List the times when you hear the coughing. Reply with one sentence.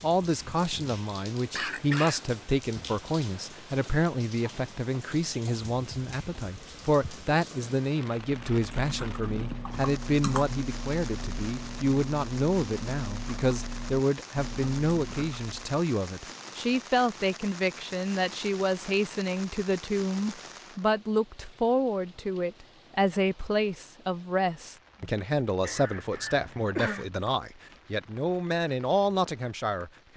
You can hear the coughing from 1.6 to 2.2 s and from 25.6 to 27.1 s.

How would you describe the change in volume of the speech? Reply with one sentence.
The volume of the speech stays about the same.